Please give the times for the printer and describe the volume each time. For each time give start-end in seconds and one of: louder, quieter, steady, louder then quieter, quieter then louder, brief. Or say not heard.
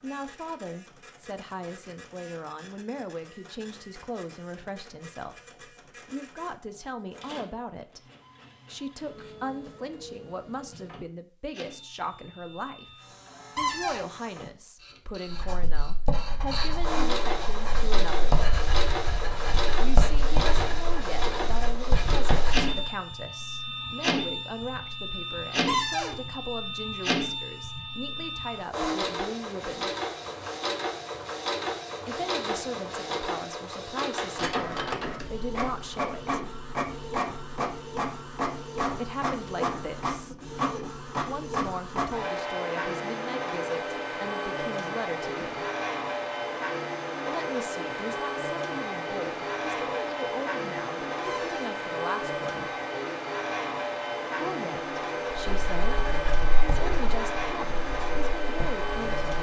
0.0-59.3 louder.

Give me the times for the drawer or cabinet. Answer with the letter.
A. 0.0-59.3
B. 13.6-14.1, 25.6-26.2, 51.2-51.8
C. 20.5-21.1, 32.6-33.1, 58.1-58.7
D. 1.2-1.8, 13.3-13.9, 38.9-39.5
B.